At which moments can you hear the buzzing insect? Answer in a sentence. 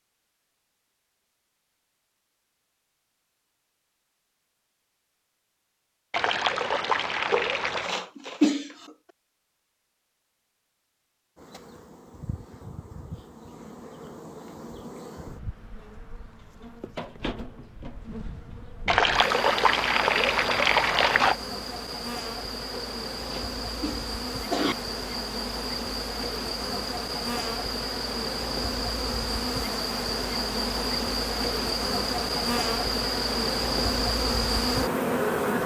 You can hear the buzzing insect from 11.3 to 35.6 s.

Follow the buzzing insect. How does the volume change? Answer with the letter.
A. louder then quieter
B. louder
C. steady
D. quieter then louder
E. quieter
B.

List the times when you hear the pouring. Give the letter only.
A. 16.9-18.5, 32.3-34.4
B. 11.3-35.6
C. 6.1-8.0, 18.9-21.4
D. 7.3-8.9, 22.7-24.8
C.